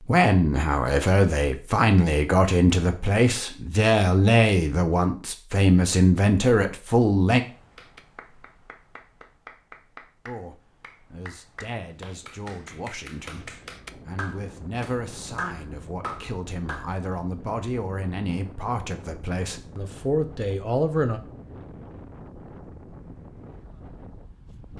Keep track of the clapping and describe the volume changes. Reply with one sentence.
The loudness of the clapping goes up.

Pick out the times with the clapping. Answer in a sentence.
The clapping can be heard from 7.8 to 16.9 s.